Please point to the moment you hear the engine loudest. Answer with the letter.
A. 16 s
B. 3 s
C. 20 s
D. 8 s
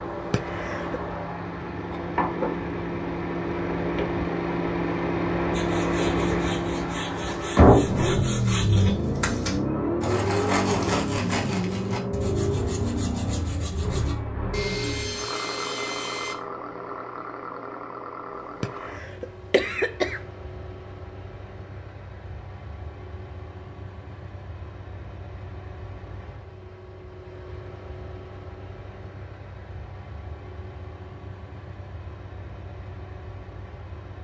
D.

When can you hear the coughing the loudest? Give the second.
20 s.